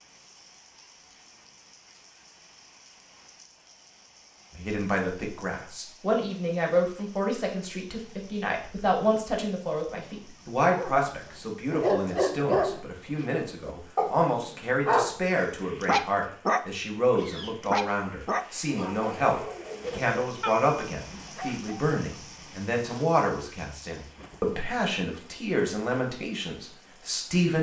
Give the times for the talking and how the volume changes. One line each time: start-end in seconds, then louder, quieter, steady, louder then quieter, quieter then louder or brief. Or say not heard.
4.5-27.5 steady.